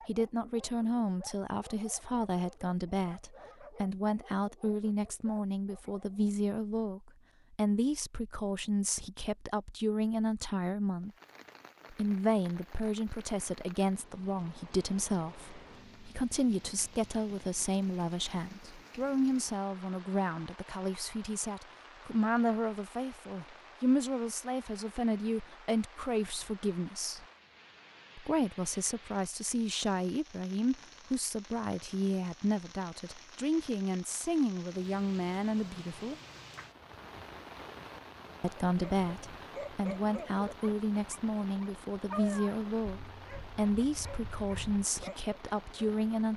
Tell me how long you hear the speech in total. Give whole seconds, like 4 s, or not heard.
42 s.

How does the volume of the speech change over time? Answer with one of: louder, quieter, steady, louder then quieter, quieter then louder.
steady.